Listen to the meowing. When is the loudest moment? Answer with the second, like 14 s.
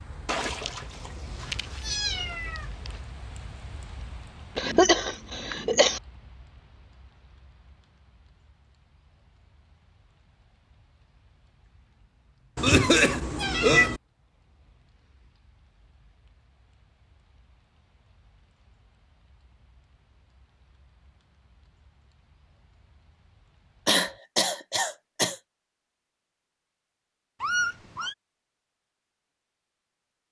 14 s.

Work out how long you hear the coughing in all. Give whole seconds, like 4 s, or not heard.
4 s.